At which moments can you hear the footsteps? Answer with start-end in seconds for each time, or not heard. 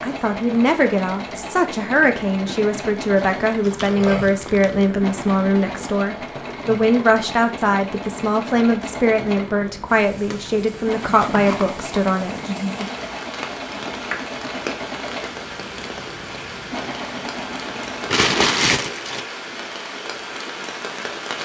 not heard.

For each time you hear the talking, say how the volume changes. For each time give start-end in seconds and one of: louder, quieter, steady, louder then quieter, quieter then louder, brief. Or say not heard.
0.0-12.5 steady.